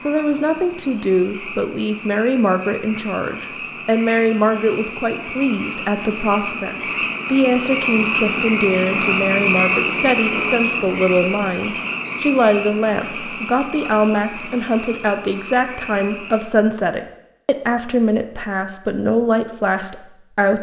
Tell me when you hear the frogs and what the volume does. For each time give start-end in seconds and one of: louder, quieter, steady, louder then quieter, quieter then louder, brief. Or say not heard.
0.0-16.5 louder then quieter.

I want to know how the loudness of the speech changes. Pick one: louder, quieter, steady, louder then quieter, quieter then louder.
steady.